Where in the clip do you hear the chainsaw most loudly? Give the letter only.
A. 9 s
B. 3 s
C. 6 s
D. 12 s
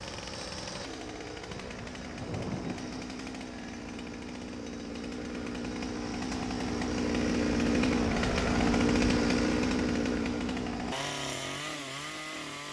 A.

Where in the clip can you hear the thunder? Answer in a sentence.
The thunder can be heard from 1.4 to 3.0 s.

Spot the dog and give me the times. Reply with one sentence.
You can't hear the dog here.